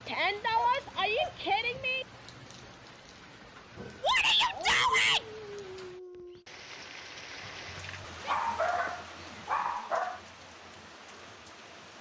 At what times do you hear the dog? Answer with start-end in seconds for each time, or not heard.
0.3-1.9, 4.5-6.5, 8.2-10.2.